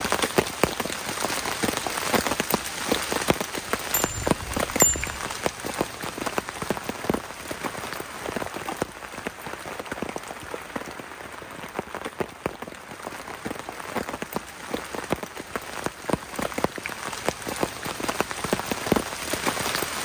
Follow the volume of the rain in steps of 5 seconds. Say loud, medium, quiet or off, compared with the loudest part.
loud, medium, medium, loud.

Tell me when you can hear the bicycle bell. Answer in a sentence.
The bicycle bell can be heard from 3.9 to 5.2 s.